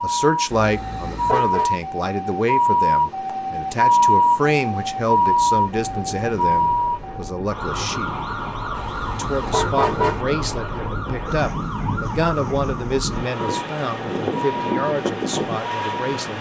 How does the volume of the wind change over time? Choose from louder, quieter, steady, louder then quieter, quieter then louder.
louder.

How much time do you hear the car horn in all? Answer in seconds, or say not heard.
3 s.